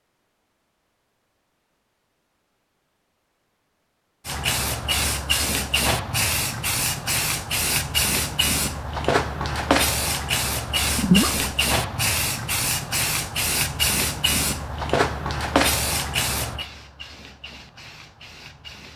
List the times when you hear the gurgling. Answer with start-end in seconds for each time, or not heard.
10.9-11.4.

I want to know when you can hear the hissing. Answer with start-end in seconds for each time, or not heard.
4.2-18.9.